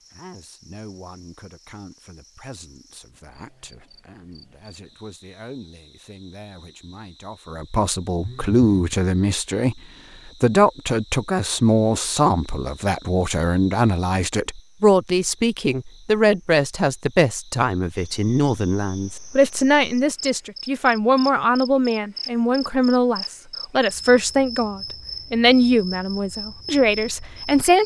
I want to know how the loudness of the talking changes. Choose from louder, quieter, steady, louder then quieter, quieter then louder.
louder.